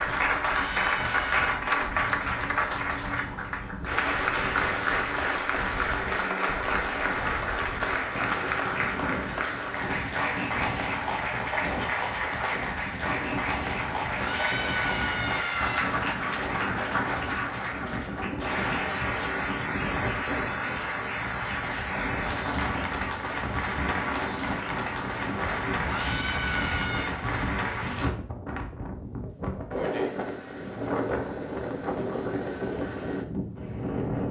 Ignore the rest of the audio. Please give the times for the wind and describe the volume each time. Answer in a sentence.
The wind can be heard from 0.0 to 34.2 s, getting louder.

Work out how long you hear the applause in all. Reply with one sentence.
You can hear the applause for 28 seconds altogether.